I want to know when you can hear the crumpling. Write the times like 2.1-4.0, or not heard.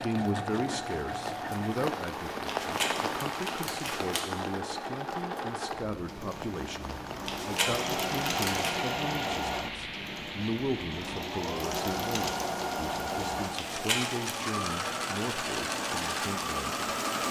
2.5-4.2, 7.2-8.7, 13.6-14.3.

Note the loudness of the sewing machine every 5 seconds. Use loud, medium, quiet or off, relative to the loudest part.
medium, loud, loud, loud.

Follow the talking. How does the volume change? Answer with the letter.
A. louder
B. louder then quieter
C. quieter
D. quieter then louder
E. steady
E.